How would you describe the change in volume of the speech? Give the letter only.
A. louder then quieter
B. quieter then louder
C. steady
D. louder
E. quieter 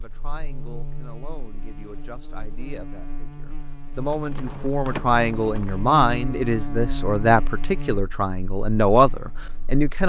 D.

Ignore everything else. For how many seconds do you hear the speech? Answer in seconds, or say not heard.
10 s.